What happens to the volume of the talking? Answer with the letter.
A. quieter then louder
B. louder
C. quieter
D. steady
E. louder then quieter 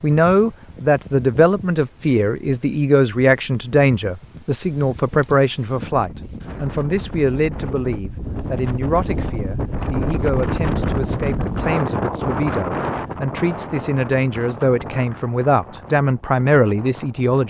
A.